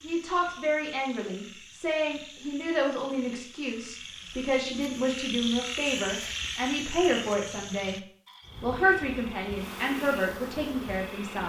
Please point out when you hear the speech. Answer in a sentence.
You can hear the speech from 0.0 to 8.0 s and from 8.6 to 11.4 s.